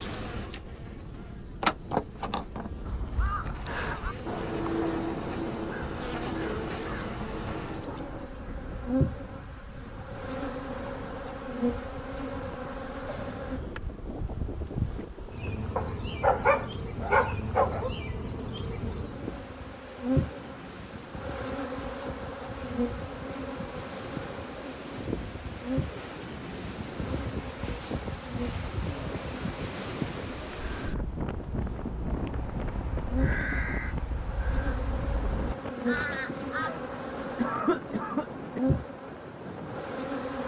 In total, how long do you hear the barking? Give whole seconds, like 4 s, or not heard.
2 s.